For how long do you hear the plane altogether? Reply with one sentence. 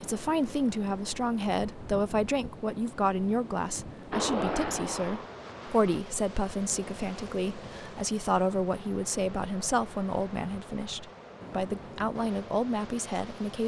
The plane can be heard for 2 seconds in total.